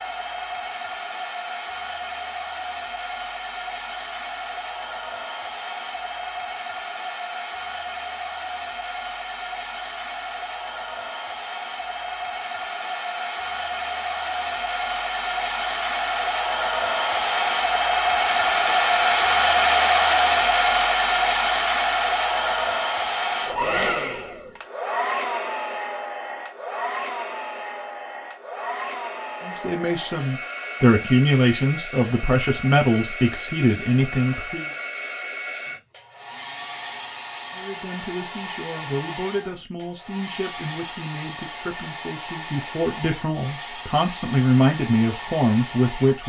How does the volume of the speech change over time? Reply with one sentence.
The loudness of the speech goes down, then up.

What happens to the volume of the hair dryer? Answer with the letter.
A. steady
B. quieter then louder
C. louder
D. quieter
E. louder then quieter
E.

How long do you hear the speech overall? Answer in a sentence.
The speech can be heard for 14 seconds in total.